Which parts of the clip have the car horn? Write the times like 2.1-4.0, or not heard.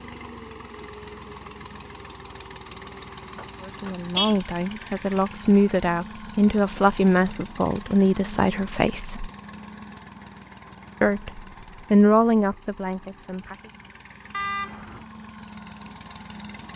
3.4-4.3, 14.3-15.1.